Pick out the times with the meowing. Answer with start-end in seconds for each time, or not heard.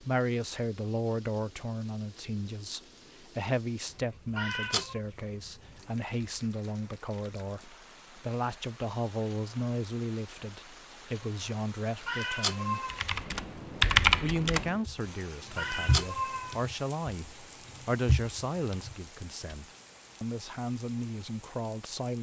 4.3-5.0, 12.1-13.0, 15.6-16.6.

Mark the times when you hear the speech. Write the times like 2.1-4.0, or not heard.
0.0-12.8, 14.2-22.1.